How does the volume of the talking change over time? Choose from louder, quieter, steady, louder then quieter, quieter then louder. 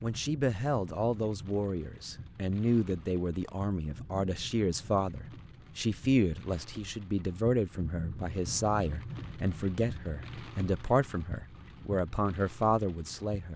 steady.